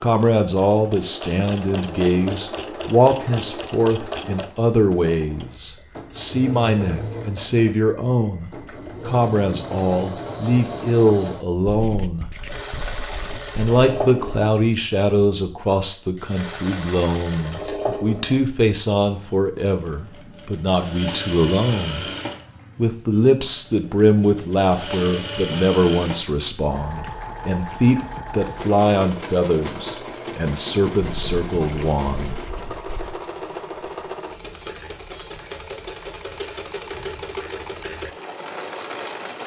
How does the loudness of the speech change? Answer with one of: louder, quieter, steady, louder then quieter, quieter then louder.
steady.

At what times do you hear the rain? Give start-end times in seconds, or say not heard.
not heard.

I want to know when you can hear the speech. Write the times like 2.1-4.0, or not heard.
0.0-12.2, 13.6-22.1, 22.8-32.4.